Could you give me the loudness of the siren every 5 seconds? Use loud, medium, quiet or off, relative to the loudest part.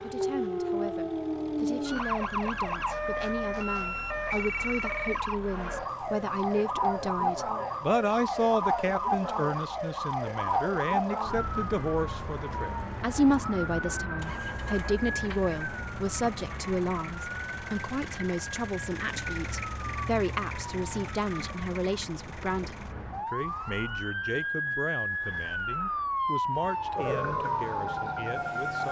loud, loud, loud, medium, medium, loud.